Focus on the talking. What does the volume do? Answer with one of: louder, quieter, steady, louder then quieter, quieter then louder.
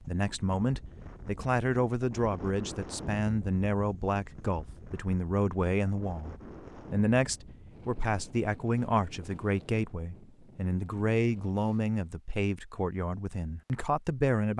steady.